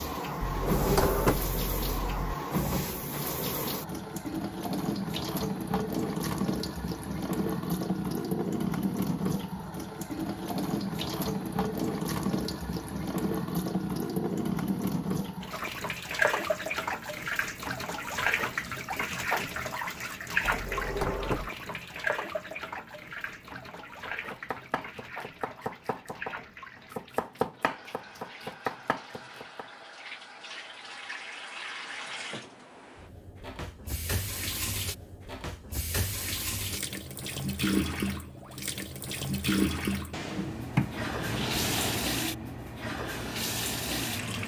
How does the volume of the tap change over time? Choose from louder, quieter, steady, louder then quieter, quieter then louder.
quieter then louder.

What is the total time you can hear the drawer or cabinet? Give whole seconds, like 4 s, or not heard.
5 s.